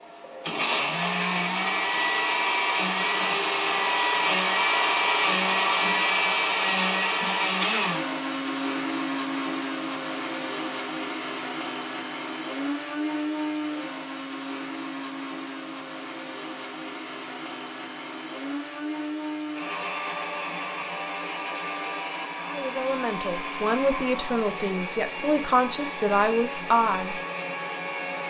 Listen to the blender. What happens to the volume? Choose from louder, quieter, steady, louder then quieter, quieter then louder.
quieter.